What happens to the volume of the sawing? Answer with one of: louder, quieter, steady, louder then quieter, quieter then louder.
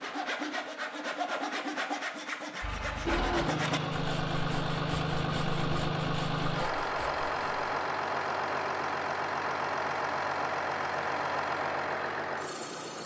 quieter.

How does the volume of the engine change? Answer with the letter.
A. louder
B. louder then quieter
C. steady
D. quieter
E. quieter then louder
C.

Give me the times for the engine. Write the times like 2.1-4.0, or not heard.
2.6-13.0.